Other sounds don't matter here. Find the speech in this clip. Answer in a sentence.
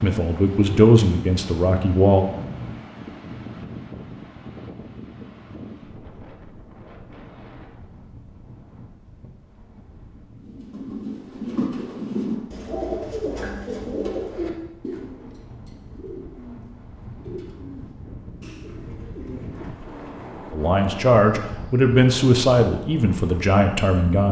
The speech can be heard from 0.0 to 2.2 s and from 20.5 to 24.2 s.